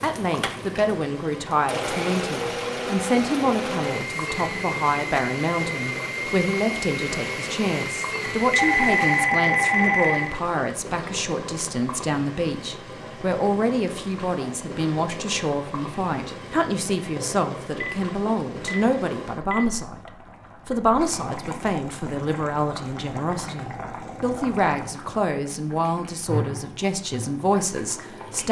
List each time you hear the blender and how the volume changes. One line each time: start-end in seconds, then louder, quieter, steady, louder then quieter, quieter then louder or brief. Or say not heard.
0.0-9.3 steady.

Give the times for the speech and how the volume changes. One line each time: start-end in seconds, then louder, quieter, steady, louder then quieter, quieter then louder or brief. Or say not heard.
0.0-28.4 steady.